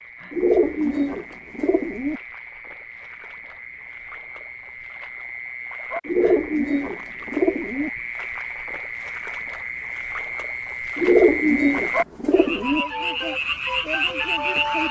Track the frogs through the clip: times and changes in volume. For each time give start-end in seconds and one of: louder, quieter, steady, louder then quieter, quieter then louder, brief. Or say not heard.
0.0-14.8 louder.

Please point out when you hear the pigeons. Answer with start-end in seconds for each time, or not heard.
0.3-2.2, 6.0-7.9, 10.9-12.8.